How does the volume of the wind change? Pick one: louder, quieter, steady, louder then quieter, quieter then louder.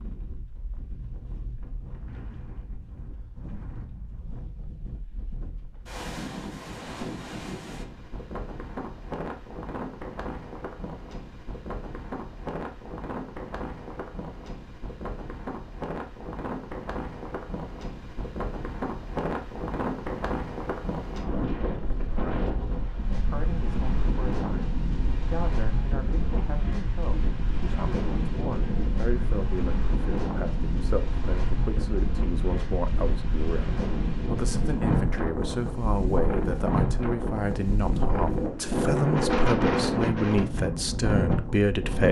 louder.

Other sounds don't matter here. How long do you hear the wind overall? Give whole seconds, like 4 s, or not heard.
42 s.